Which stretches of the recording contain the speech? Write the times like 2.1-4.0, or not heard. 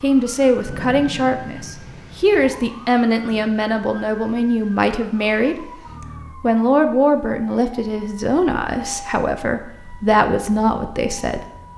0.0-5.7, 6.4-11.4.